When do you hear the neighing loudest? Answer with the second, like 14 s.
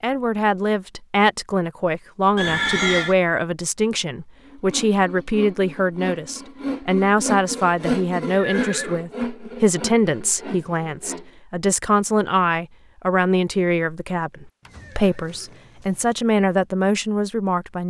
3 s.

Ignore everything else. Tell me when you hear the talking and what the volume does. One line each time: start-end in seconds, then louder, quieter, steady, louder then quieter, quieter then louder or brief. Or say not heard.
0.0-17.8 steady.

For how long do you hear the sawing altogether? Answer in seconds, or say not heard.
7 s.